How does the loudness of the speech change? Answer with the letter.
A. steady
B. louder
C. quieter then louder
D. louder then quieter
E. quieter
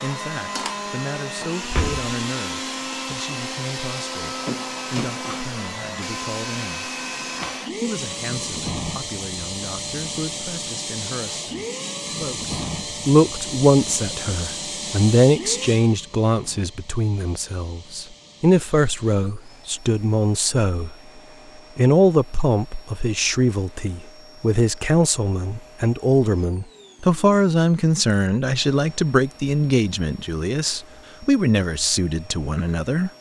B.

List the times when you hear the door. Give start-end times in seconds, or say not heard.
1.6-2.1.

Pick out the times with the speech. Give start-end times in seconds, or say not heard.
0.0-6.9, 7.8-20.9, 21.8-33.1.